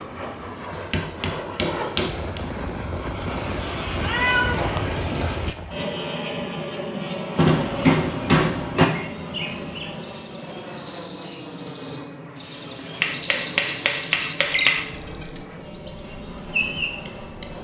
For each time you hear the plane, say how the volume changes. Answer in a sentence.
You can hear the plane from 0.0 to 17.5 s, getting quieter.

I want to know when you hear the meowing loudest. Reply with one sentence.
The volume of the meowing peaks at 4 seconds.